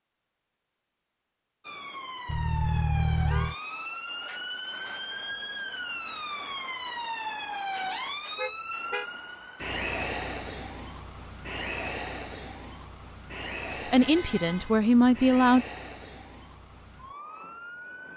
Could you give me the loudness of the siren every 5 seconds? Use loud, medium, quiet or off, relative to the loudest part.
loud, loud, loud, medium.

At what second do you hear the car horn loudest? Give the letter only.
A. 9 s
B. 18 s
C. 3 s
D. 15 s
C.